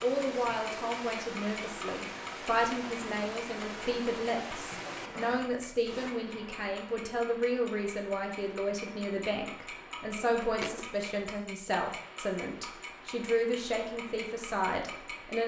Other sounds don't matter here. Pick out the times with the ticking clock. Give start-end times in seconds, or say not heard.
0.0-15.3.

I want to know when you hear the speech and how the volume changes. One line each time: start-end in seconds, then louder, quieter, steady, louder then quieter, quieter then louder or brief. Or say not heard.
0.0-15.4 steady.